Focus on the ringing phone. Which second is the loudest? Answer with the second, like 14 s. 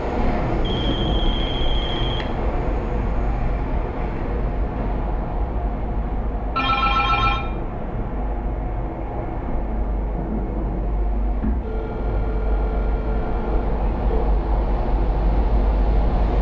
7 s.